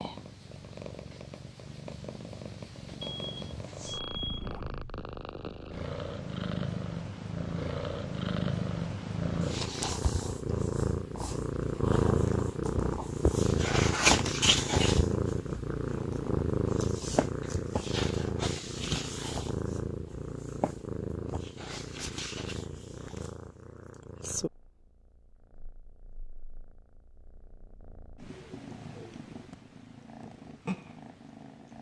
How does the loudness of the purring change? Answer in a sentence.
The volume of the purring goes up, then down.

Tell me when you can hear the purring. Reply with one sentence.
The purring can be heard from 0.0 to 31.7 s.